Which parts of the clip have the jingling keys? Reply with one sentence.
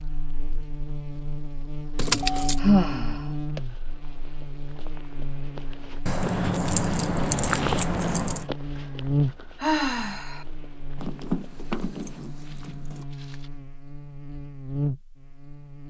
The jingling keys can be heard from 1.9 to 2.6 s, from 6.0 to 8.4 s and from 10.9 to 13.1 s.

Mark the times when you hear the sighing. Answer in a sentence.
The sighing can be heard from 2.6 to 3.6 s and from 9.6 to 10.4 s.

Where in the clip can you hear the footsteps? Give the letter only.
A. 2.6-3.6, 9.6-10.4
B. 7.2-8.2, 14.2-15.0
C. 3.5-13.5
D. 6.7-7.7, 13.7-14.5
C.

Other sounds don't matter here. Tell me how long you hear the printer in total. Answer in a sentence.
You can't hear the printer here.